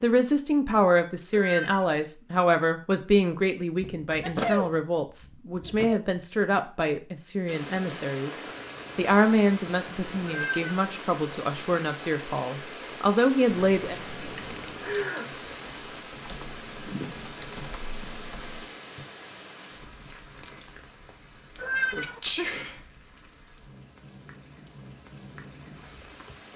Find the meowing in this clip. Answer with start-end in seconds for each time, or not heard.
1.3-1.9, 10.2-10.7, 21.6-22.2.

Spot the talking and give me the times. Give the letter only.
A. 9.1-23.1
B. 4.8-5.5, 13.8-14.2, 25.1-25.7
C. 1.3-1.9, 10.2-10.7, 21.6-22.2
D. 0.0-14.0
D.